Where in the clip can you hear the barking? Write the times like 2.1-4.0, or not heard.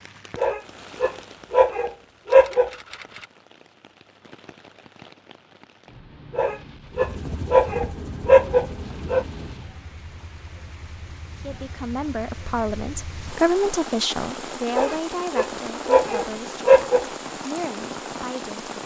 0.3-2.7, 6.3-9.2, 14.7-17.1.